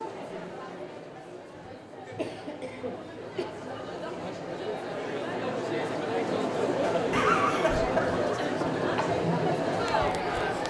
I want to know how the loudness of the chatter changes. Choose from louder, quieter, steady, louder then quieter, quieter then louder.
louder.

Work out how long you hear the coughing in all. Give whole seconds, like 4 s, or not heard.
3 s.